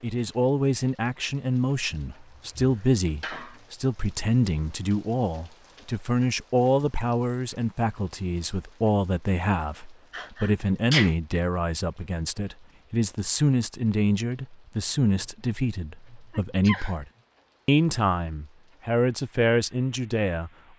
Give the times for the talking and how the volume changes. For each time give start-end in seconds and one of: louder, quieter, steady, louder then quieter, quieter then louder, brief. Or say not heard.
0.0-17.1 steady
17.6-20.5 brief.